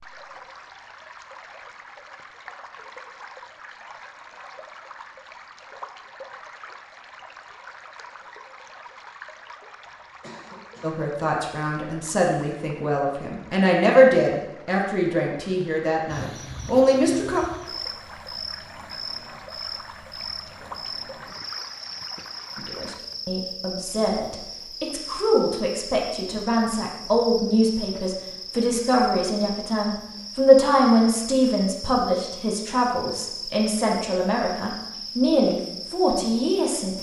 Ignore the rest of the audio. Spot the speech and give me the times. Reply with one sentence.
You can hear the speech from 10.8 to 17.4 s and from 22.6 to 36.9 s.